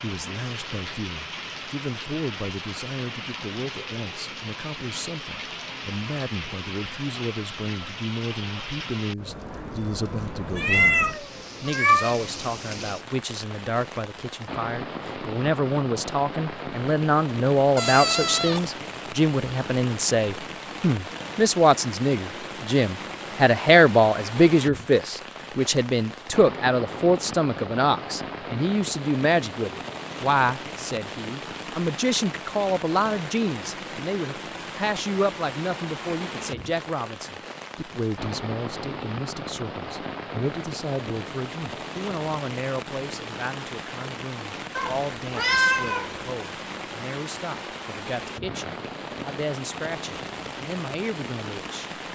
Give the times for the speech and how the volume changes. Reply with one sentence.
The speech can be heard from 0.0 to 52.0 s, getting louder then quieter.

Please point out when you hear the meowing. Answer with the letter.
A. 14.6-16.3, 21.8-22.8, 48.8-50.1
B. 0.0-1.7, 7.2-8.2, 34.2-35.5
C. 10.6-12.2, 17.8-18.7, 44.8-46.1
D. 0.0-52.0
C.